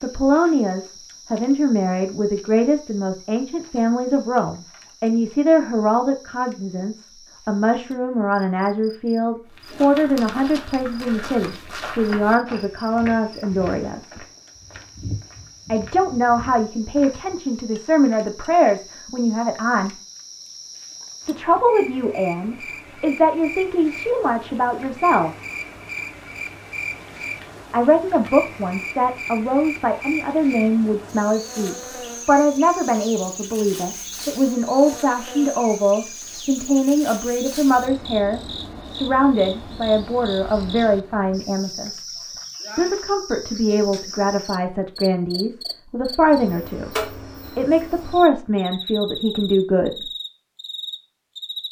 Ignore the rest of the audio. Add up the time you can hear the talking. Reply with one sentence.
The talking can be heard for 45 seconds in total.